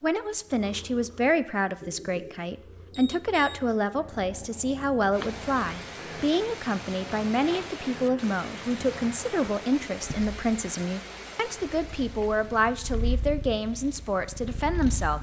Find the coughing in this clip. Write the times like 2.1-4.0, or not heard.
not heard.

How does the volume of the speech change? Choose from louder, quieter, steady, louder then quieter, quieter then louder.
steady.